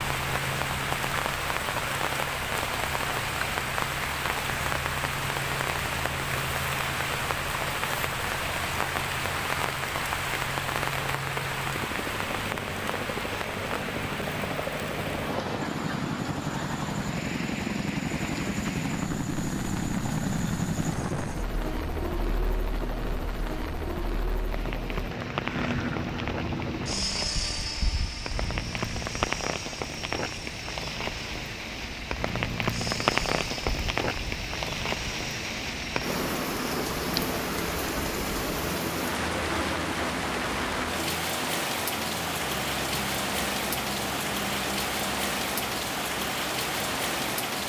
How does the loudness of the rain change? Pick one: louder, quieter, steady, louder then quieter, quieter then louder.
quieter then louder.